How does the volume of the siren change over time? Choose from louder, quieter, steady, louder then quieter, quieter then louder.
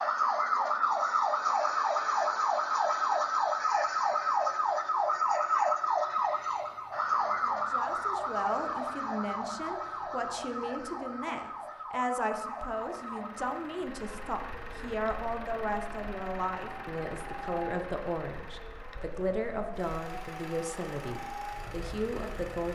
quieter.